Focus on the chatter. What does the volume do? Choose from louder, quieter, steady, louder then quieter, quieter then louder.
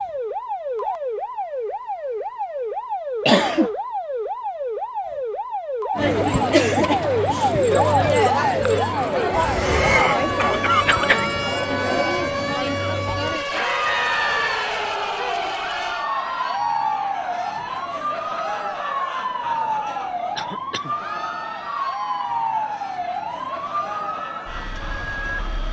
quieter.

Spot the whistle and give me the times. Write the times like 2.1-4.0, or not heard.
13.8-14.7.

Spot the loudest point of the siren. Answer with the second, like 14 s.
8 s.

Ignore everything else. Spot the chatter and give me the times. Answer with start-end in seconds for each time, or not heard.
6.0-25.6.